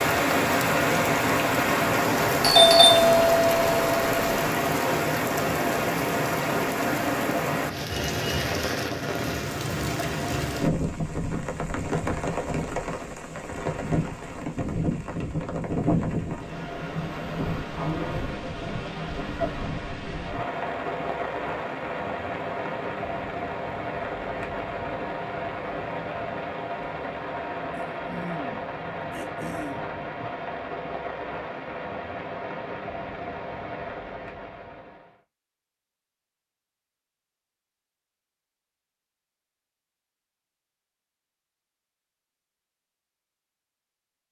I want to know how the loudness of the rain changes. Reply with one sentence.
The volume of the rain goes down.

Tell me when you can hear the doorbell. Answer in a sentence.
The doorbell can be heard from 2.4 to 4.2 s.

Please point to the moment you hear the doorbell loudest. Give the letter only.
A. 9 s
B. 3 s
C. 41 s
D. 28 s
B.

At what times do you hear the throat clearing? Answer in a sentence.
The throat clearing can be heard from 27.8 to 29.9 s.